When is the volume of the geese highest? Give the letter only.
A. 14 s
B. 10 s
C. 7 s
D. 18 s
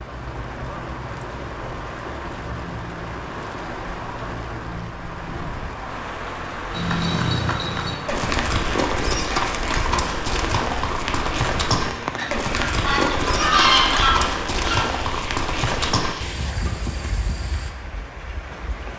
A.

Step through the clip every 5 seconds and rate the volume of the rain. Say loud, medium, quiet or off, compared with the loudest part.
loud, loud, loud, medium.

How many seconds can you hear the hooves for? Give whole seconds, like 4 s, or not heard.
11 s.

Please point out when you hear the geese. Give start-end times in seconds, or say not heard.
12.2-14.8.